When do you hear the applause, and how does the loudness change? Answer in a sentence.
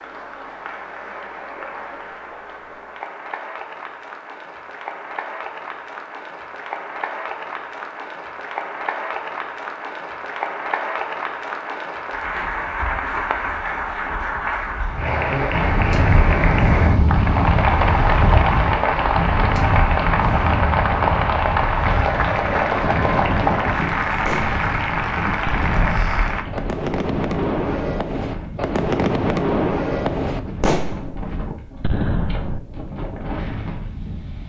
The applause can be heard from 0.0 to 26.4 s, getting louder.